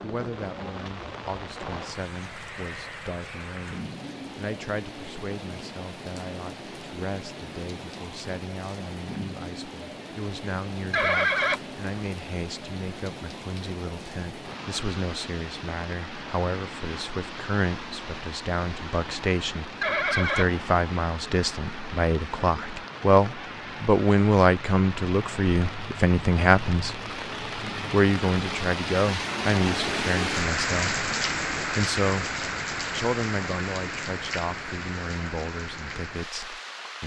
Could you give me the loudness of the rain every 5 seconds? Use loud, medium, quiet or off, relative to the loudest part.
medium, medium, medium, medium, medium, loud, loud, medium.